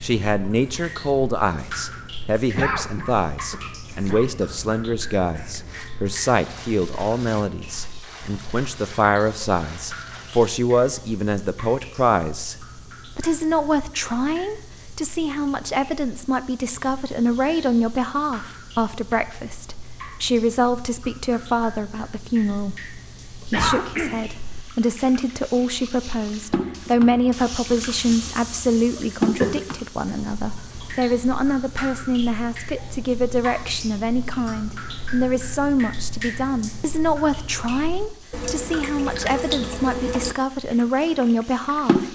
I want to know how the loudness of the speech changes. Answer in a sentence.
The loudness of the speech stays about the same.